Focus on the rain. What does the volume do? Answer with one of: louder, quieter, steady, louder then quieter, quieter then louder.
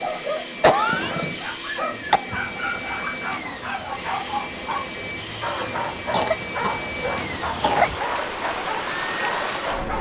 louder.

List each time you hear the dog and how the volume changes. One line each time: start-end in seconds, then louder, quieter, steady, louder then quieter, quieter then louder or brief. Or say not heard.
0.0-9.9 steady.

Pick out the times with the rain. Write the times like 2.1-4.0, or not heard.
2.5-9.9.